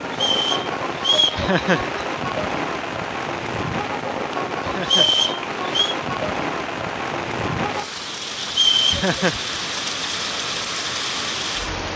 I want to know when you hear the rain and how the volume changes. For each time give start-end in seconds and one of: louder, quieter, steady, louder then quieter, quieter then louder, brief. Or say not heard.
0.0-11.9 steady.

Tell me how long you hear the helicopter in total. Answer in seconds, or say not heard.
not heard.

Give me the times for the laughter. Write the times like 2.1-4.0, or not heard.
1.4-2.0, 4.6-5.2, 8.9-9.4.